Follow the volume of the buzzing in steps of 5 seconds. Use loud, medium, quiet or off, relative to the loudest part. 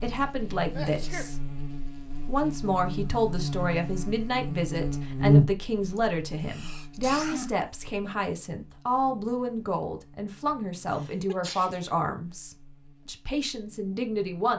medium, loud, quiet.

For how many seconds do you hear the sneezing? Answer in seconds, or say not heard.
3 s.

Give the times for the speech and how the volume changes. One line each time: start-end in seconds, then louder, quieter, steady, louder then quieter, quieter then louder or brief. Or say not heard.
0.0-14.5 steady.